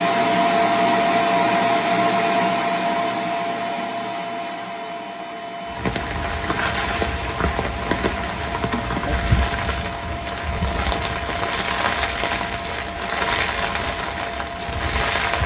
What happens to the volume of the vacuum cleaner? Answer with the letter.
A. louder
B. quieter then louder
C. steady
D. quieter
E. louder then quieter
D.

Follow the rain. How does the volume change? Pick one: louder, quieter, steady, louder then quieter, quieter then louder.
steady.